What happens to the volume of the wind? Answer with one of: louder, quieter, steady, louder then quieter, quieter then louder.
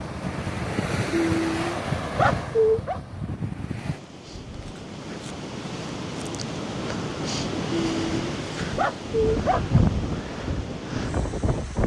quieter then louder.